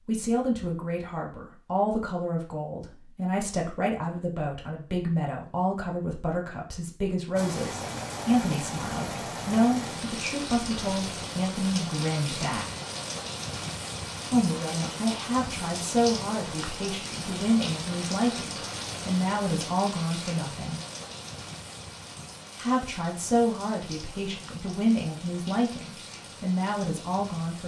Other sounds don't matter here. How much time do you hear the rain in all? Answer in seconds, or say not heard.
20 s.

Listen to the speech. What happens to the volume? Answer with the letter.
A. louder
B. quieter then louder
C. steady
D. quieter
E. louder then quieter
C.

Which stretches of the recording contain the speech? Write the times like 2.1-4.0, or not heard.
0.1-12.7, 14.3-20.8, 22.6-27.6.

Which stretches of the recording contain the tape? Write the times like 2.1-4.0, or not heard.
not heard.